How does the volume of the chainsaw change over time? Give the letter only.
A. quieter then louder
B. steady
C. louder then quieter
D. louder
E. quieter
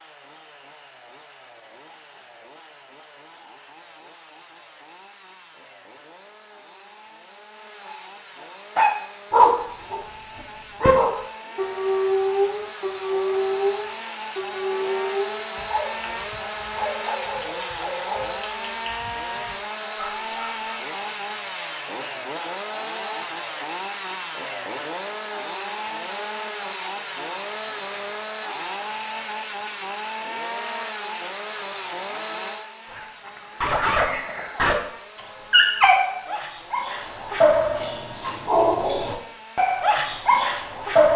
C.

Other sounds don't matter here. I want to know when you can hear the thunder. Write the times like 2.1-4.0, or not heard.
not heard.